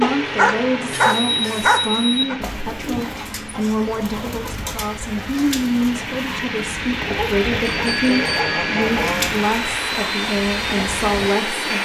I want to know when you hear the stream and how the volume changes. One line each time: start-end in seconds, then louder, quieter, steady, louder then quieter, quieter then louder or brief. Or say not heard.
0.0-11.8 quieter then louder.